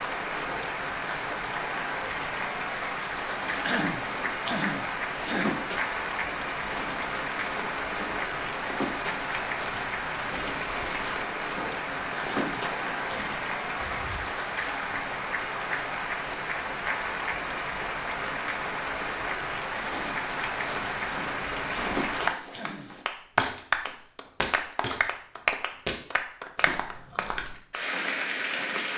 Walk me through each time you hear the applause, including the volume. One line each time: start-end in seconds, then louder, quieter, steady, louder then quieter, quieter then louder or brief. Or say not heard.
0.0-28.9 steady.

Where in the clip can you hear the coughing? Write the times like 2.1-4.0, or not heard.
3.6-5.6, 12.2-13.4, 21.7-22.9.